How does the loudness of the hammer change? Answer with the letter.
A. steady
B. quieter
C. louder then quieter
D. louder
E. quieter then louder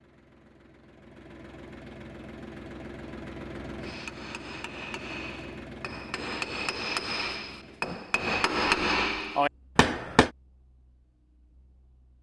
D.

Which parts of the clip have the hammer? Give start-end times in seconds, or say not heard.
3.8-10.3.